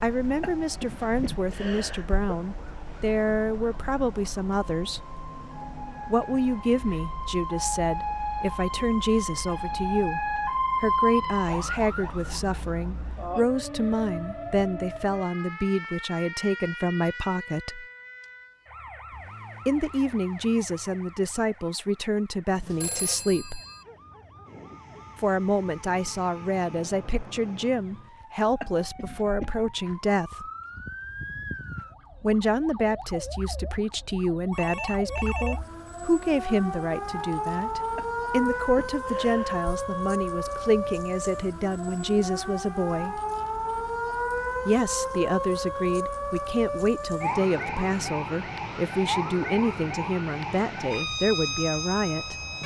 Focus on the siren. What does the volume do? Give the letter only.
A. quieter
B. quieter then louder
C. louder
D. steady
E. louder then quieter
B.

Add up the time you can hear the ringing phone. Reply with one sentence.
You can hear the ringing phone for 2 seconds altogether.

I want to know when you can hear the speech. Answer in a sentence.
You can hear the speech from 0.0 to 5.0 s, from 6.0 to 17.9 s, from 19.6 to 23.6 s, from 25.1 to 30.4 s, from 32.2 to 43.2 s and from 44.6 to 52.4 s.